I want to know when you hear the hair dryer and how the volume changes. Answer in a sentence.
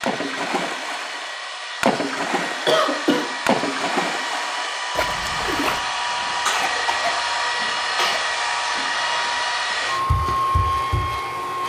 You can hear the hair dryer from 0.0 to 11.6 s, getting louder.